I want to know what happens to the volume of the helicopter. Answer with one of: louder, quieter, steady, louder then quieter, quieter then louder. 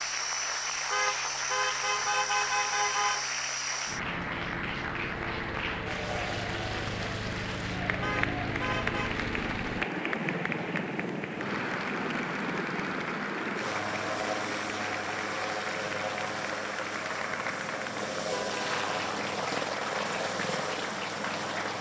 steady.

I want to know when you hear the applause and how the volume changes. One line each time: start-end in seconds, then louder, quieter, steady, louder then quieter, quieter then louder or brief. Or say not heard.
0.0-21.7 steady.